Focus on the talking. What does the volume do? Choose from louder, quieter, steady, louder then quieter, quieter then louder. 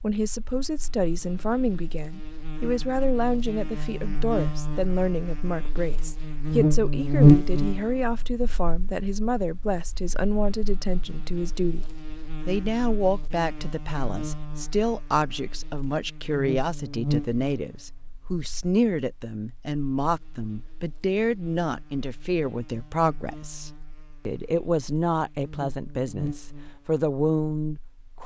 steady.